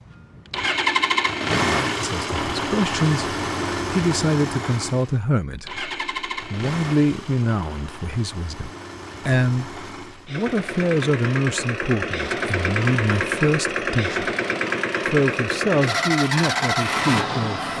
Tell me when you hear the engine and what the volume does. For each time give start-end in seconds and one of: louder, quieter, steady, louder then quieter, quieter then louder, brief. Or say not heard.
0.0-17.7 quieter then louder.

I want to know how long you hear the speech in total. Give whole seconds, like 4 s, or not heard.
15 s.